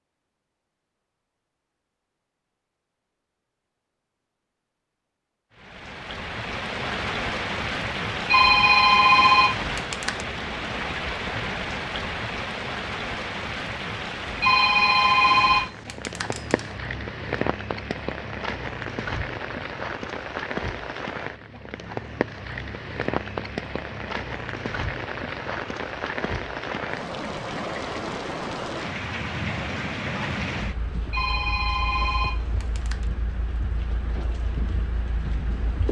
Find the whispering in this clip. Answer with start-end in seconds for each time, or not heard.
not heard.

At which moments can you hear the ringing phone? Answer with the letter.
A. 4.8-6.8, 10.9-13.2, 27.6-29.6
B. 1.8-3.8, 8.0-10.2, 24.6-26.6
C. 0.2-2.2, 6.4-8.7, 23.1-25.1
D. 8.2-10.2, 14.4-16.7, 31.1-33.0
D.